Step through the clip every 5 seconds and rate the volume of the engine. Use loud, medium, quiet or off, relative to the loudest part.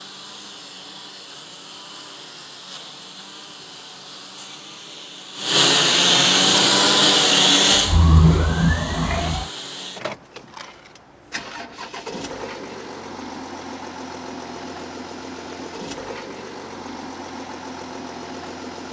quiet, loud, quiet, quiet.